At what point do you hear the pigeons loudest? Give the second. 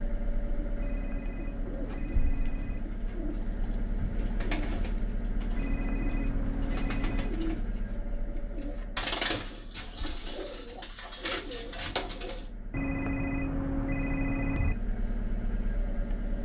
9 s.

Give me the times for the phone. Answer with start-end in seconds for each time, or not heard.
0.8-2.8, 5.5-7.3, 12.7-14.8.